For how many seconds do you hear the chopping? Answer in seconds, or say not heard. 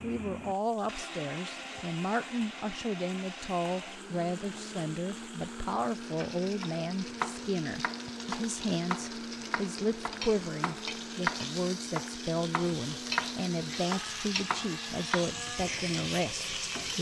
9 s.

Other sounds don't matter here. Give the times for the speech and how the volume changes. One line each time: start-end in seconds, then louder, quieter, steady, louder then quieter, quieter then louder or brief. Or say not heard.
0.0-16.9 steady.